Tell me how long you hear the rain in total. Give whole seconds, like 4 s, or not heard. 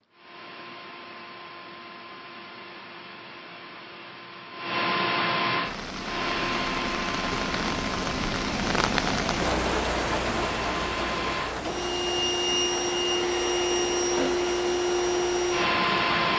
11 s.